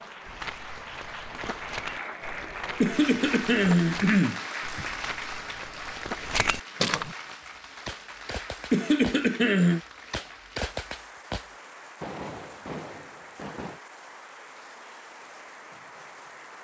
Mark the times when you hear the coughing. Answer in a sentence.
You can hear the coughing from 2.8 to 4.8 s and from 8.7 to 9.8 s.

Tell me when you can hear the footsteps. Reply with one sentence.
The footsteps can be heard from 0.2 to 7.2 s.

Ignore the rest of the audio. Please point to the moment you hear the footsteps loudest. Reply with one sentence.
The volume of the footsteps peaks at 7 seconds.